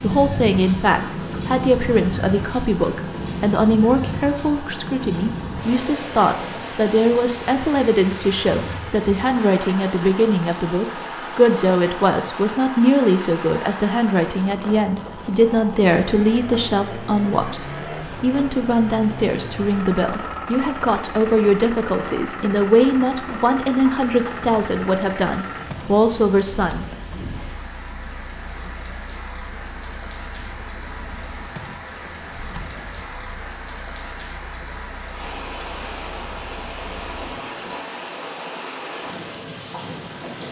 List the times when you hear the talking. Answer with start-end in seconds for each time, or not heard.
0.0-26.9.